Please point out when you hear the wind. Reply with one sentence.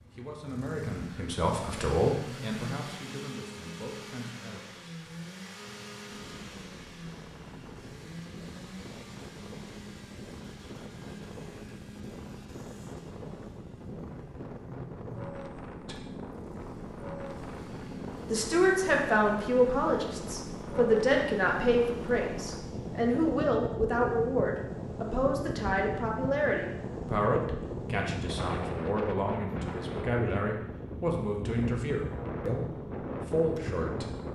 You can hear the wind from 6.0 to 34.3 s.